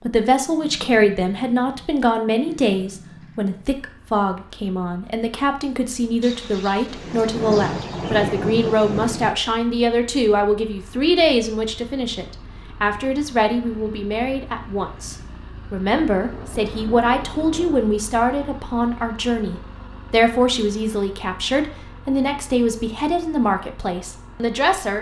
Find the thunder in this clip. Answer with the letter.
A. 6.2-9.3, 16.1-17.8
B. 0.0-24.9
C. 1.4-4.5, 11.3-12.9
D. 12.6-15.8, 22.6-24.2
A.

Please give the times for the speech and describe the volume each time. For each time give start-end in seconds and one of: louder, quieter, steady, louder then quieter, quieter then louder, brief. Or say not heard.
0.0-24.9 steady.